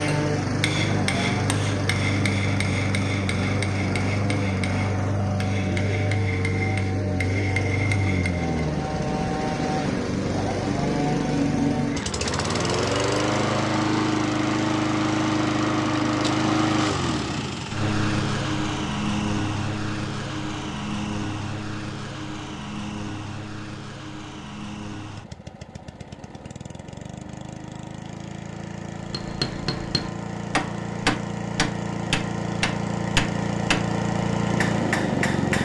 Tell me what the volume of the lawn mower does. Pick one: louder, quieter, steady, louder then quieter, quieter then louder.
quieter then louder.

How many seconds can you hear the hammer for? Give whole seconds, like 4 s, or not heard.
15 s.